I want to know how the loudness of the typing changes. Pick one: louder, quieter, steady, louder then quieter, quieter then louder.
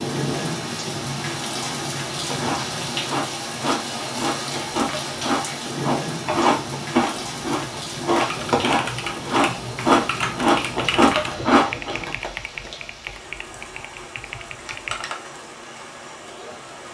quieter.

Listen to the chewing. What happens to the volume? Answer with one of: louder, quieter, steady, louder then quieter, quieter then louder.
louder.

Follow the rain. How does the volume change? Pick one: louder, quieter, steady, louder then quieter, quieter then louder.
quieter.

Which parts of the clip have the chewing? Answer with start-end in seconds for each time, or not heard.
2.3-12.1.